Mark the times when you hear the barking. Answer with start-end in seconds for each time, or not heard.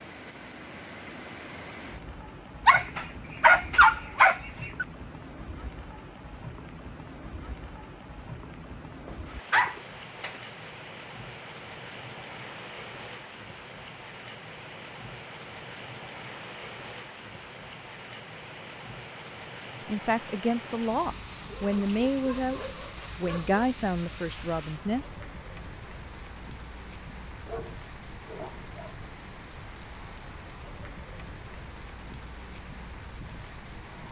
2.6-4.8, 9.1-10.7, 21.4-23.6, 27.4-29.1.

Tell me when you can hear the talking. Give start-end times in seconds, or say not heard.
19.9-25.1.